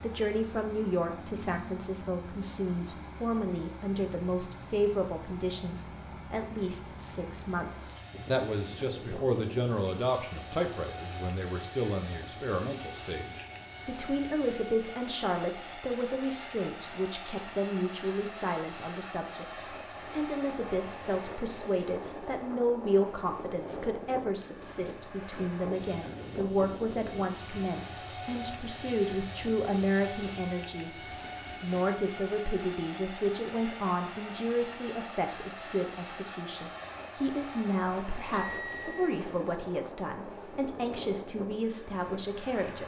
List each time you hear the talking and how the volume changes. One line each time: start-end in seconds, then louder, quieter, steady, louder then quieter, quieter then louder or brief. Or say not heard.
0.0-30.9 steady
31.6-42.8 steady.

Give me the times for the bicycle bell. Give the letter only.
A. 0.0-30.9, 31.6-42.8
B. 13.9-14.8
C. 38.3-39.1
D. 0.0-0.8
C.